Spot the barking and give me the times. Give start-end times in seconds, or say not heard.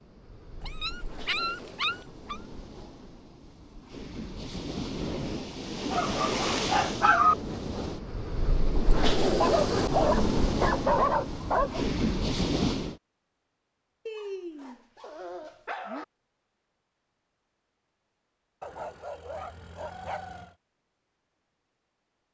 0.6-2.4, 5.9-7.3, 9.4-11.8, 14.1-16.1, 18.6-20.6.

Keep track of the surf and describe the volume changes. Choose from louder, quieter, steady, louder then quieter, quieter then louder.
louder.